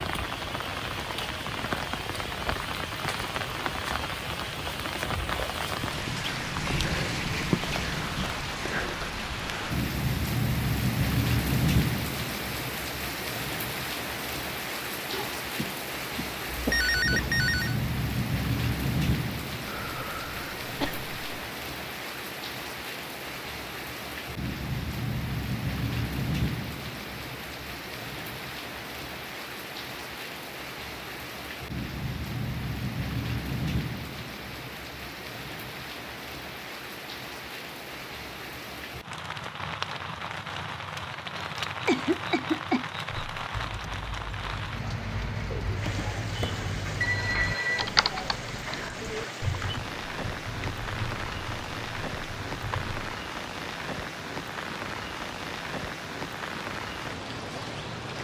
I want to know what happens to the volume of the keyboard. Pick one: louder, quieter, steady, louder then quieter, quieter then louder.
louder then quieter.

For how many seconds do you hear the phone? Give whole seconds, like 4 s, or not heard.
2 s.